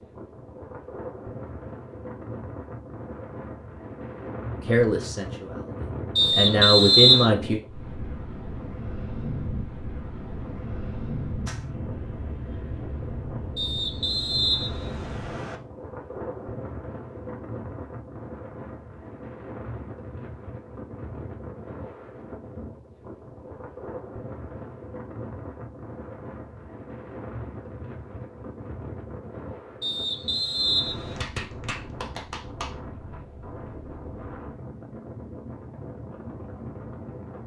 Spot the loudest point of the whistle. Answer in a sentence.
The volume of the whistle peaks at 7 seconds.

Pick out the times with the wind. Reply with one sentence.
The wind can be heard from 0.0 to 37.4 s.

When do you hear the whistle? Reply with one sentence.
The whistle can be heard from 6.2 to 7.3 s, from 13.6 to 15.6 s and from 29.8 to 31.3 s.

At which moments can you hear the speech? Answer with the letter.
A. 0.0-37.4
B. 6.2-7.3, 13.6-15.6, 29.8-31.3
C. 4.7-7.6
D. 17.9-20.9
C.